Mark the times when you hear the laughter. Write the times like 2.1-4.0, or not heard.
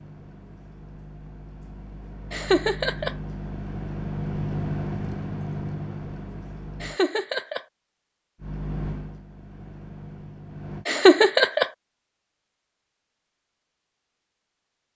2.3-3.1, 6.8-7.6, 10.8-11.7.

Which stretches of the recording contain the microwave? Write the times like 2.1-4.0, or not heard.
0.0-7.0, 8.3-10.8.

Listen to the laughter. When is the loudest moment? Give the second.
11 s.